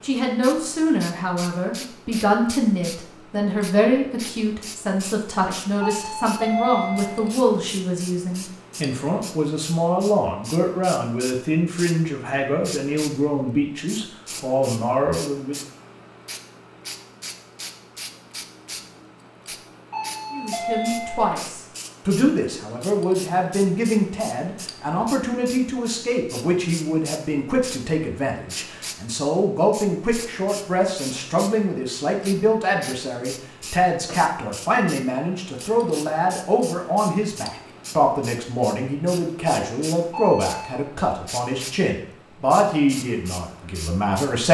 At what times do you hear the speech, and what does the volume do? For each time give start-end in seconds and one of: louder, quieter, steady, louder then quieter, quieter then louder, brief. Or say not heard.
0.0-15.6 steady
20.3-44.5 steady.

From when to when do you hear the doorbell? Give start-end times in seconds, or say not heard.
5.8-7.3, 19.9-21.3, 40.1-40.8.